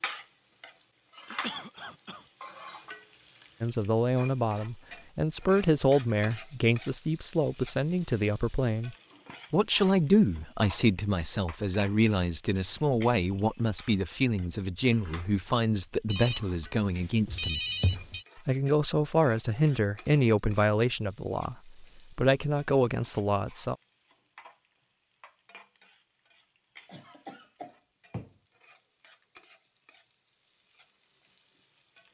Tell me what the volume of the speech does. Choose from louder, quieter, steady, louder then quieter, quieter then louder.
steady.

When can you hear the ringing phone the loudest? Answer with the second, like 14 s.
18 s.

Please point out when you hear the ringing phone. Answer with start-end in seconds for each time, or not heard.
16.1-18.2.